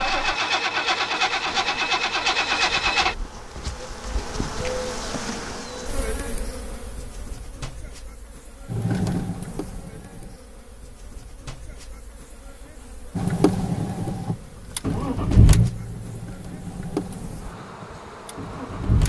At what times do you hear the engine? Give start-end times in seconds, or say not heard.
0.0-3.1, 8.7-10.4, 13.2-19.0.